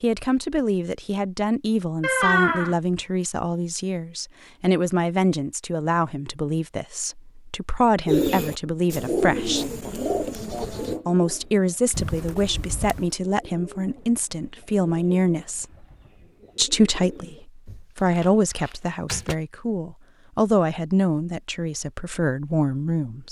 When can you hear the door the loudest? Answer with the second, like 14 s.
2 s.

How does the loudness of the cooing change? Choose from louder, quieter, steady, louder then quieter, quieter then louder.
quieter.